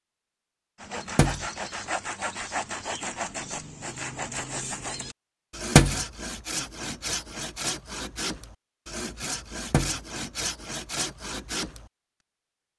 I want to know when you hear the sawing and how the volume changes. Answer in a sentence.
The sawing can be heard from 0.8 to 11.9 s, at a steady volume.